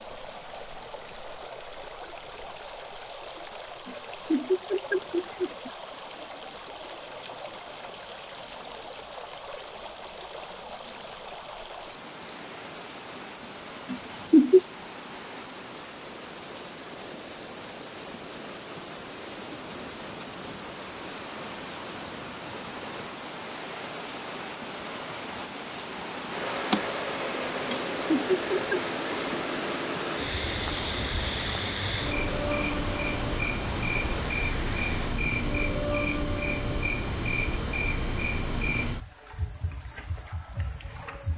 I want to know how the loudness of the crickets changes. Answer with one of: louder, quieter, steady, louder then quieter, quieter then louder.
quieter.